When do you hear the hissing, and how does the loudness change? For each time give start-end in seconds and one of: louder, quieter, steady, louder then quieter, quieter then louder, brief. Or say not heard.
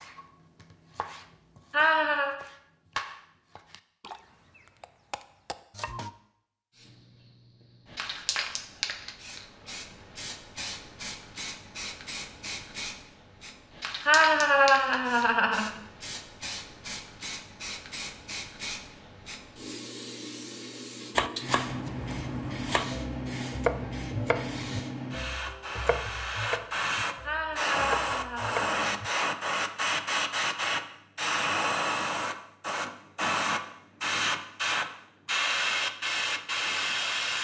6.7-37.3 louder.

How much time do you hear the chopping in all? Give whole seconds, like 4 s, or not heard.
14 s.